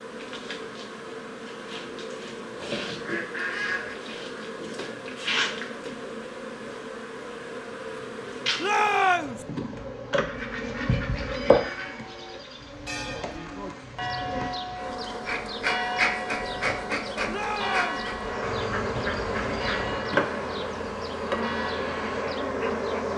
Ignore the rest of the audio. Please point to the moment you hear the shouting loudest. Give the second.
9 s.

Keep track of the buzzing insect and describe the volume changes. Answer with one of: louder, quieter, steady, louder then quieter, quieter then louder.
louder.